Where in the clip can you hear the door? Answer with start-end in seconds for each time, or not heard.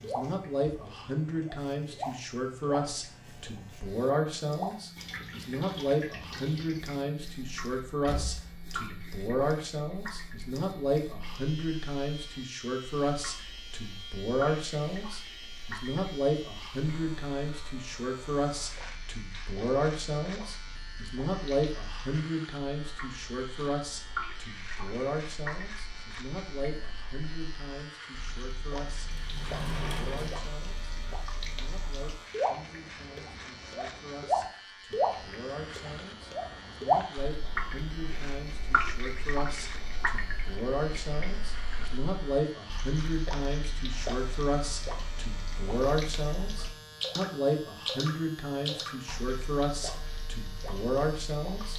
8.0-8.6, 29.1-30.4.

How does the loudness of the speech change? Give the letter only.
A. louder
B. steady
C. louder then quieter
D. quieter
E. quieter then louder
E.